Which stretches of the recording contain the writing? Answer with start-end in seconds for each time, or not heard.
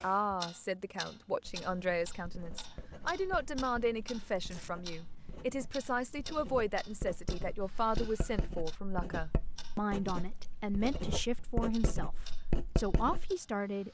1.4-13.3.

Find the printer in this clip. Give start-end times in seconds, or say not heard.
not heard.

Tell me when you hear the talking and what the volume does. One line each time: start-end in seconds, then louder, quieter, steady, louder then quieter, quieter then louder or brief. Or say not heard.
0.0-13.8 steady.